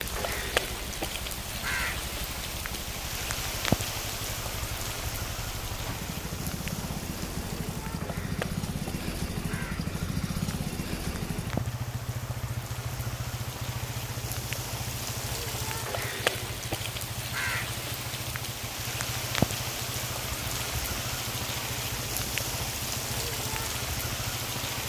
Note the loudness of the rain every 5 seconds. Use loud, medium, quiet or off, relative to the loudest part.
loud, medium, medium, loud, loud.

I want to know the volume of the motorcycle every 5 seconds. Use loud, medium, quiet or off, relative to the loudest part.
medium, loud, loud, medium, medium.